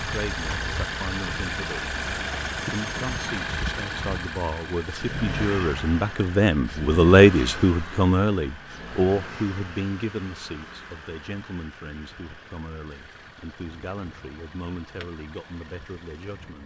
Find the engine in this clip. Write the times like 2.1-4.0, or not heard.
0.0-16.6.